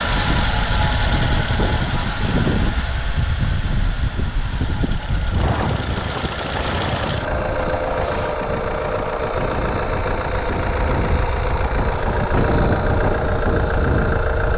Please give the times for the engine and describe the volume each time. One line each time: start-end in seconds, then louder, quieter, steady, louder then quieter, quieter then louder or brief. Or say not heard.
0.0-14.5 quieter then louder.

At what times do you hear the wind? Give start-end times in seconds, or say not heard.
0.0-14.5.